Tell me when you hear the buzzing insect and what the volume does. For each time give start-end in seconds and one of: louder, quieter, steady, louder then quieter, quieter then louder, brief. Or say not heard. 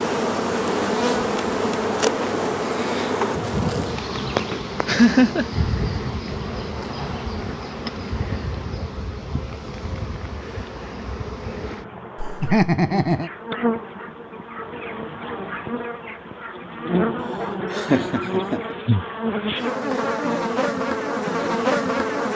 0.0-22.3 quieter then louder.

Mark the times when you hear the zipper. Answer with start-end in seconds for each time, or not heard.
6.4-7.8.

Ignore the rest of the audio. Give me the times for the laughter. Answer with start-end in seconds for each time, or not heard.
4.8-5.5, 12.2-13.3, 17.7-18.8.